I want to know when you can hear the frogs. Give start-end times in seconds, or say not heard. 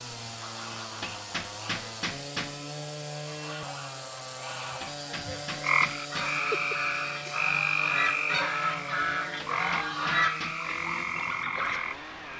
5.6-12.1.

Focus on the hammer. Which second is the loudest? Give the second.
2 s.